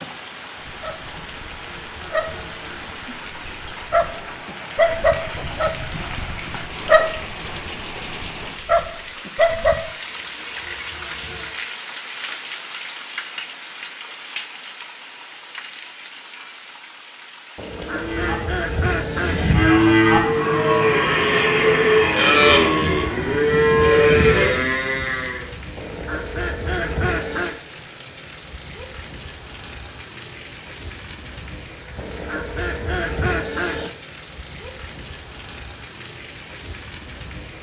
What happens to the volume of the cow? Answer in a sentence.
The volume of the cow goes up.